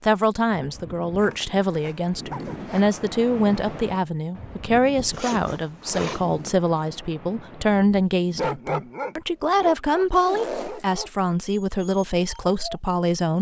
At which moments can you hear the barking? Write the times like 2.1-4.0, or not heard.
8.1-12.8.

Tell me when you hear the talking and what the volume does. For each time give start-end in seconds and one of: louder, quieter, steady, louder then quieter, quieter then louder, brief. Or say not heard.
0.0-13.3 steady.